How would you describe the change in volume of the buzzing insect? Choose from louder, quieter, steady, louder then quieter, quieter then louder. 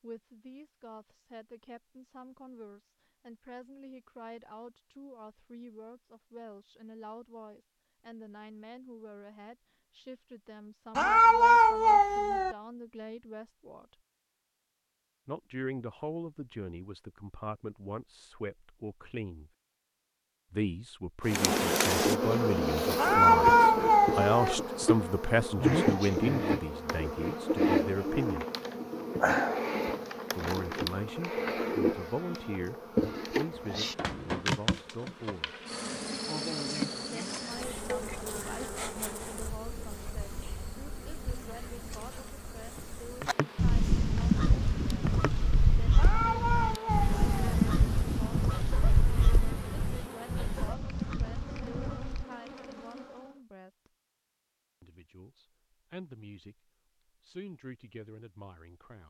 quieter.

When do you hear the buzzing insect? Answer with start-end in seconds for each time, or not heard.
21.2-53.4.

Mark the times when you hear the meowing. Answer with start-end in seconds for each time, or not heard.
10.9-12.6, 22.9-24.6, 46.0-47.5.